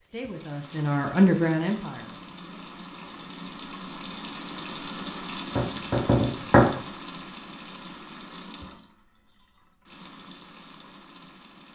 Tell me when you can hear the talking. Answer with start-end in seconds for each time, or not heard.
0.0-2.6.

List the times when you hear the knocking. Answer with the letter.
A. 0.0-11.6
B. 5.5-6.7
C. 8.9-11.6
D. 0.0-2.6
B.